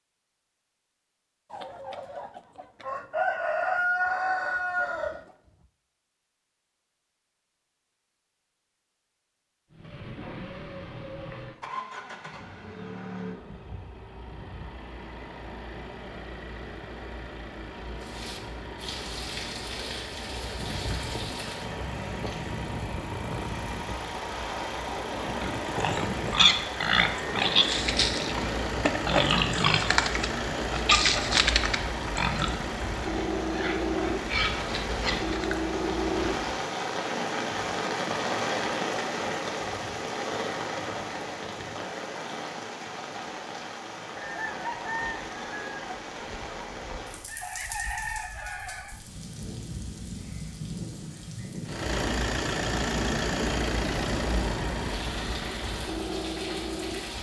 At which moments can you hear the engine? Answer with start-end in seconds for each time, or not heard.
9.7-36.6, 51.6-57.1.